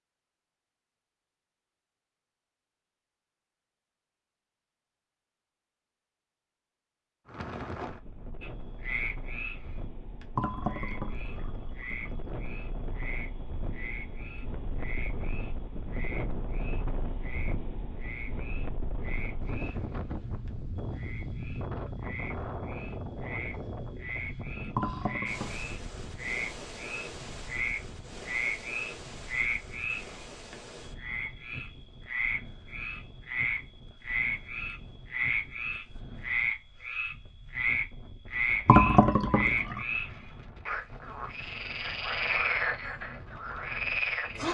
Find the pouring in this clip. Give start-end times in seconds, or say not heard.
10.3-12.2, 24.8-25.7, 38.6-39.8.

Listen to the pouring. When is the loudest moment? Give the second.
39 s.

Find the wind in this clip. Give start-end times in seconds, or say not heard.
7.2-44.4.